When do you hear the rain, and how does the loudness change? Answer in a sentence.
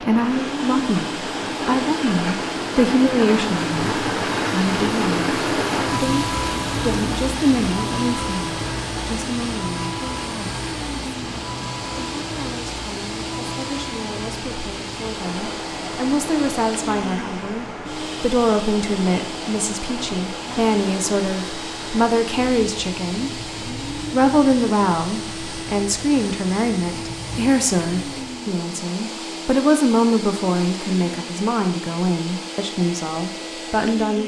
You can hear the rain from 0.0 to 28.5 s, getting quieter.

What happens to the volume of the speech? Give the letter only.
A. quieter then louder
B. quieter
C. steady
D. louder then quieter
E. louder
A.